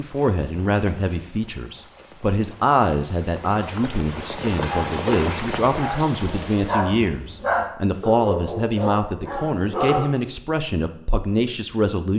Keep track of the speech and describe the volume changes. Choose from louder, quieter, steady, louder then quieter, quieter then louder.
steady.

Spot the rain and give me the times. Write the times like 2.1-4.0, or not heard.
0.0-7.0.